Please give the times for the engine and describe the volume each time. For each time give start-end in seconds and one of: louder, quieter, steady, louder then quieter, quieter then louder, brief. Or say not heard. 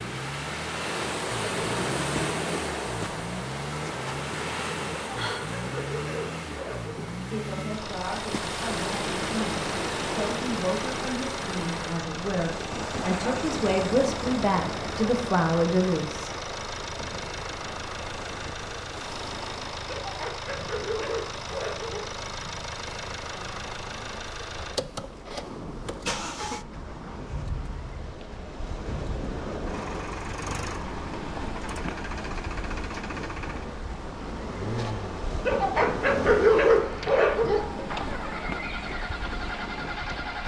0.0-40.4 steady.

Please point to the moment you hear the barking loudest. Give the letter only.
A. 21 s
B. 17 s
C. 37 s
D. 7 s
C.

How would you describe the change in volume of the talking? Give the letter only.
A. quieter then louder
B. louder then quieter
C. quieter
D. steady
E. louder
E.